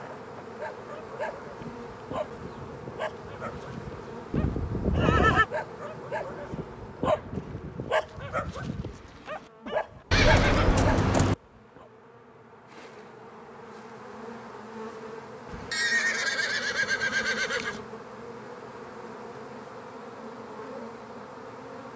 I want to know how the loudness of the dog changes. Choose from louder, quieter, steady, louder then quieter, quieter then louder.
louder.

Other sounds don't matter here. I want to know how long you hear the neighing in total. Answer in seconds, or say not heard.
5 s.